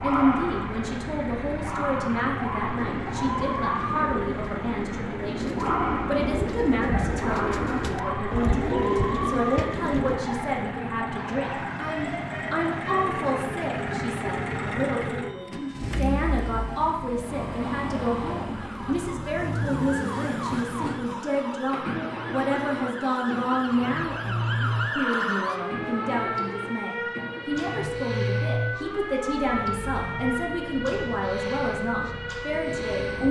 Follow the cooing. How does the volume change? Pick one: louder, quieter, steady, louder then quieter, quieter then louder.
louder.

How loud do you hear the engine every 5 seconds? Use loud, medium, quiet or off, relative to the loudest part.
loud, loud, loud, loud, loud, loud, medium.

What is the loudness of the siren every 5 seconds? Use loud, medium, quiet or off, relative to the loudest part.
loud, loud, medium, medium, loud, loud, loud.